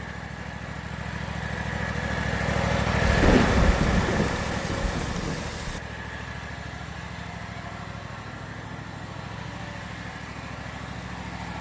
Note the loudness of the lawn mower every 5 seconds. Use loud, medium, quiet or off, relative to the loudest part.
loud, medium, medium.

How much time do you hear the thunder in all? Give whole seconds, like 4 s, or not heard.
3 s.